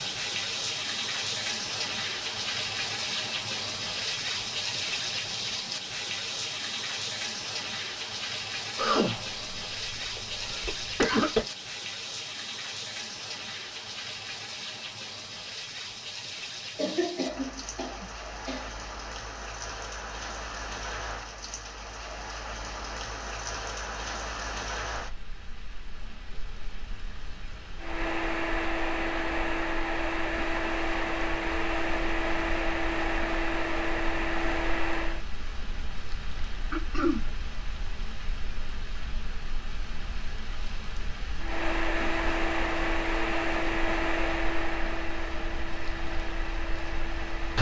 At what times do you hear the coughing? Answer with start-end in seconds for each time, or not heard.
8.8-11.4, 16.8-18.7, 36.7-37.2.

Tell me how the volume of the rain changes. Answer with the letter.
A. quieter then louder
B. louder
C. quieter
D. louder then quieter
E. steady
C.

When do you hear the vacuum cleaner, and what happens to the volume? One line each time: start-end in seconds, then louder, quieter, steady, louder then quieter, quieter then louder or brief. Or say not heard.
27.8-35.2 steady
41.4-47.5 quieter.